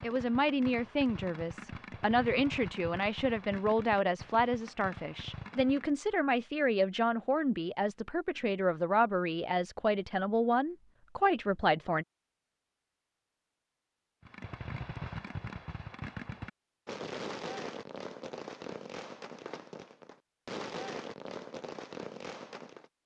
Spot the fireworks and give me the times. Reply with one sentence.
You can hear the fireworks from 0.0 to 6.0 s and from 14.2 to 22.9 s.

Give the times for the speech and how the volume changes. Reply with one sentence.
You can hear the speech from 0.0 to 12.1 s, at a steady volume.